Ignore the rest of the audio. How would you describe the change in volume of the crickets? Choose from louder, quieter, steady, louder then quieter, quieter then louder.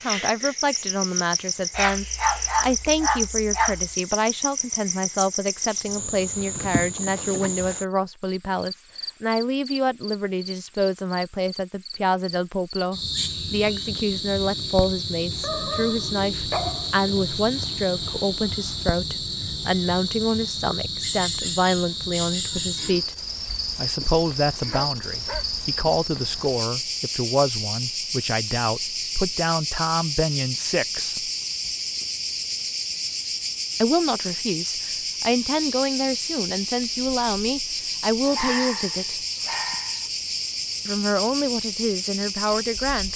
steady.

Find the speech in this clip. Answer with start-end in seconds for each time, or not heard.
0.0-23.1, 23.8-31.2, 33.8-39.1, 40.9-43.1.